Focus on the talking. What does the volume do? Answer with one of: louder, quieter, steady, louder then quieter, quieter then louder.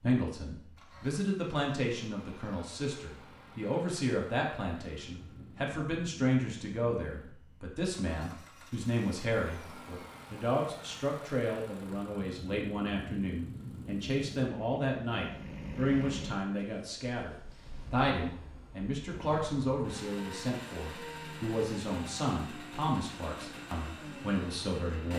steady.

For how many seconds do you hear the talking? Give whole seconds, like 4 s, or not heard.
25 s.